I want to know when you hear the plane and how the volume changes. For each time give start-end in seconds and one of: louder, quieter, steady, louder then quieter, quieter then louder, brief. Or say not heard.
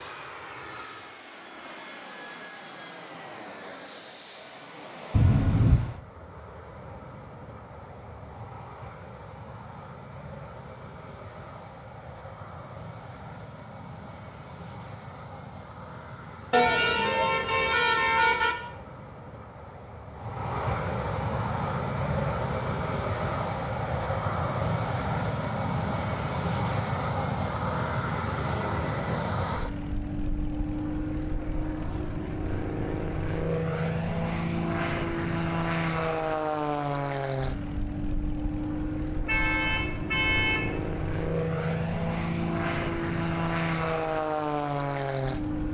0.0-45.6 louder.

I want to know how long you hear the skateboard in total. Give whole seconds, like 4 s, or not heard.
not heard.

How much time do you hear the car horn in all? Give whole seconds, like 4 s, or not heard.
4 s.